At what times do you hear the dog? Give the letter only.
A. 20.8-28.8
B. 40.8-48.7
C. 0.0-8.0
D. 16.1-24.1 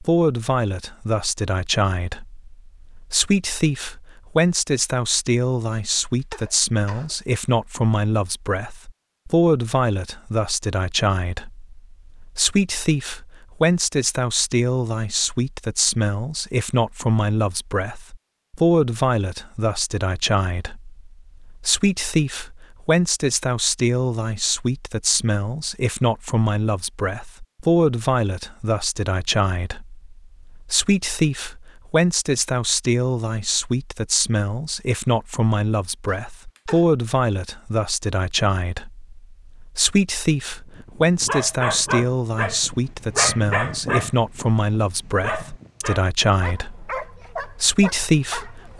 B.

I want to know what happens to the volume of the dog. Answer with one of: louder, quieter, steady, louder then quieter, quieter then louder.
quieter.